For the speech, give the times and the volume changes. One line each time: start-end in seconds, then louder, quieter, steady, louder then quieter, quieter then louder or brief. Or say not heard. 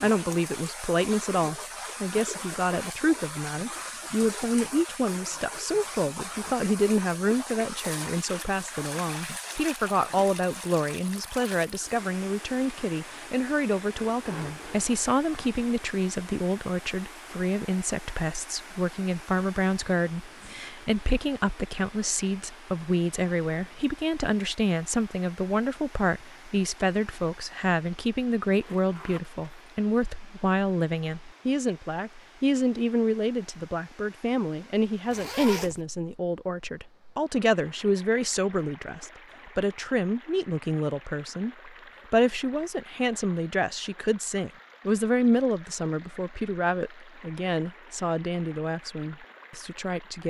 0.0-50.2 steady.